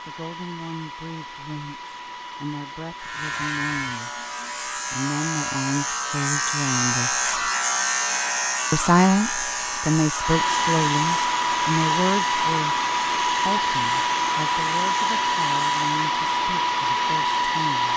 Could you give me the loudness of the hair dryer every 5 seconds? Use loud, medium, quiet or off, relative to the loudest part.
quiet, quiet, loud, loud.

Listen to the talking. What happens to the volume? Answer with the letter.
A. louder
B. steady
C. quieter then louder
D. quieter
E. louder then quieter
E.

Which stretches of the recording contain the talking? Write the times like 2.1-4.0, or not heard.
0.1-7.2, 8.7-17.9.